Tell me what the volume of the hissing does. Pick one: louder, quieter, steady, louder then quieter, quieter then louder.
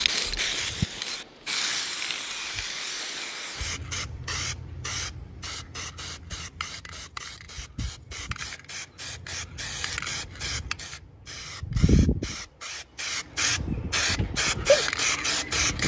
quieter then louder.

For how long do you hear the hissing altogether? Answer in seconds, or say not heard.
16 s.